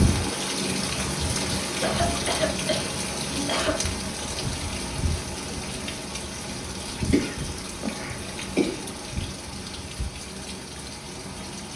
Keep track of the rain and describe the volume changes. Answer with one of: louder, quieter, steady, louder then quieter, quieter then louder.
quieter.